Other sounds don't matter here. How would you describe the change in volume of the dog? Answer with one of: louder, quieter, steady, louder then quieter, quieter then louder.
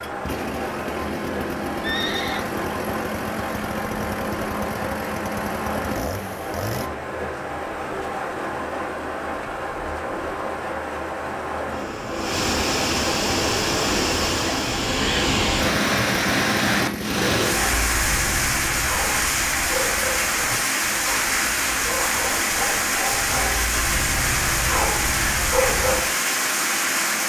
louder.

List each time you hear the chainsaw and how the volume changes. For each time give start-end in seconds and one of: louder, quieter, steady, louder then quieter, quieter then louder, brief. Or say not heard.
0.0-6.9 steady
15.6-17.7 brief.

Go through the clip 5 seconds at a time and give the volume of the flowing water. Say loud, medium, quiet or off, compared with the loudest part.
medium, medium, loud, loud, loud, loud.